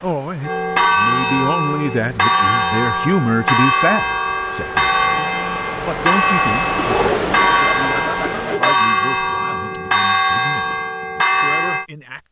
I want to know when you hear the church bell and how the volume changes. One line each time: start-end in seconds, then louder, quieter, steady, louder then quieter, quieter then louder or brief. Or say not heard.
0.4-11.8 steady.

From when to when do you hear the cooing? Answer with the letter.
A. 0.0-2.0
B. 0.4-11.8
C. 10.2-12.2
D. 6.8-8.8
D.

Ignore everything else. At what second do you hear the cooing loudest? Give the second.
7 s.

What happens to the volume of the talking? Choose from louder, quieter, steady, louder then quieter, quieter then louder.
quieter.